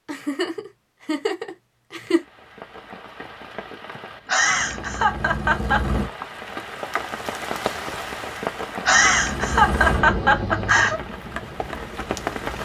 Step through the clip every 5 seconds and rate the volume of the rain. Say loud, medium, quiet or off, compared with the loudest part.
medium, loud, loud.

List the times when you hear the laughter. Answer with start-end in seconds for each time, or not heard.
0.1-2.2, 4.2-5.9, 8.8-11.0.